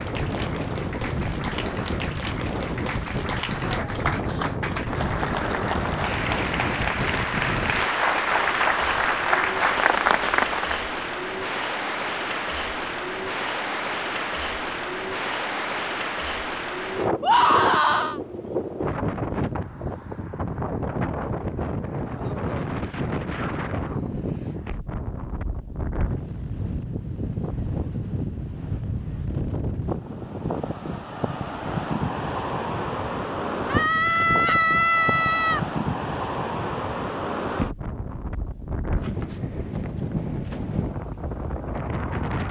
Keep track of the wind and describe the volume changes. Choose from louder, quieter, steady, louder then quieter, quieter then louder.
steady.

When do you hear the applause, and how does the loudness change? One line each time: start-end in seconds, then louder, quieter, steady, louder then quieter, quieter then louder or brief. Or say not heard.
0.0-10.8 louder.